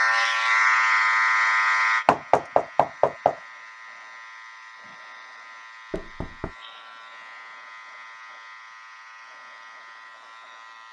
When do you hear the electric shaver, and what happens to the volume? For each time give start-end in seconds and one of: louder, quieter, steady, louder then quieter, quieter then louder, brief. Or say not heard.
0.0-10.8 quieter.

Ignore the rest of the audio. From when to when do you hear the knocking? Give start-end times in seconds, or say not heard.
2.0-3.4, 5.9-6.5.